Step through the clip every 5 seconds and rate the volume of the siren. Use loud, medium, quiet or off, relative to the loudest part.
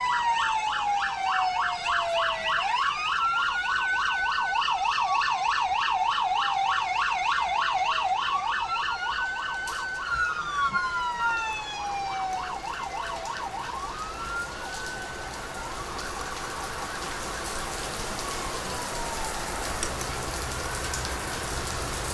loud, loud, medium, quiet, quiet.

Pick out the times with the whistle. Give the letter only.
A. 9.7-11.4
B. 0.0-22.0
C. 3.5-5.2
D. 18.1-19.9
A.